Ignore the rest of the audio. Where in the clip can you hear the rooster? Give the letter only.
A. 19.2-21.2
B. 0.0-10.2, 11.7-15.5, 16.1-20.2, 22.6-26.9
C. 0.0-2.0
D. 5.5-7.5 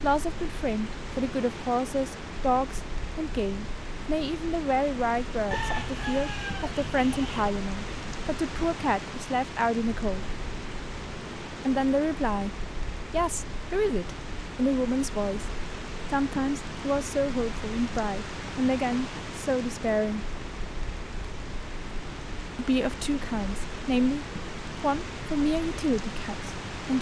D.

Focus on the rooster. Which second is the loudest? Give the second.
6 s.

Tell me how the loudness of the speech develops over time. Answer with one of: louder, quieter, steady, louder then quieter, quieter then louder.
steady.